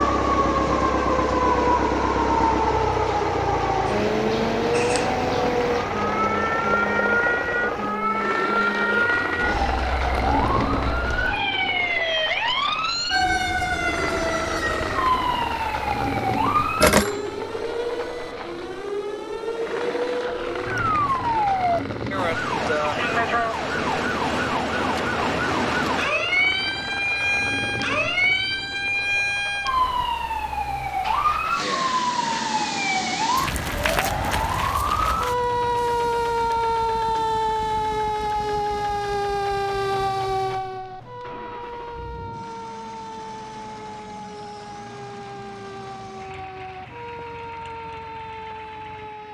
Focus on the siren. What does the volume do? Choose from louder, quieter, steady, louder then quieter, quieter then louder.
quieter.